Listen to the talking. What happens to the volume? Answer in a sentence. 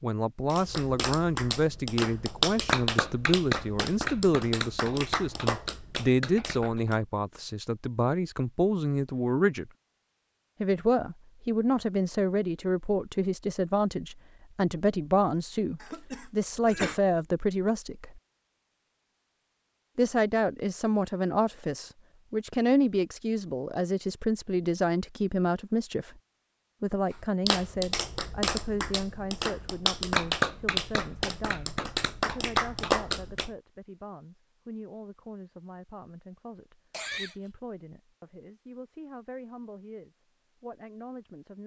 The loudness of the talking goes down.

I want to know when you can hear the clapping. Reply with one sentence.
You can hear the clapping from 0.5 to 7.0 s and from 27.1 to 33.5 s.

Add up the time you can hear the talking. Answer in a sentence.
The talking can be heard for 38 seconds in total.